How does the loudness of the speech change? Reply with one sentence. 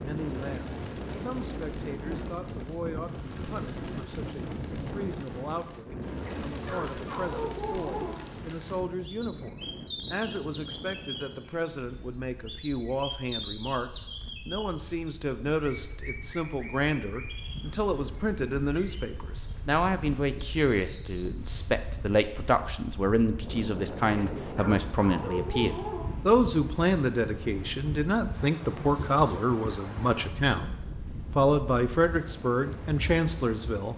The loudness of the speech goes up.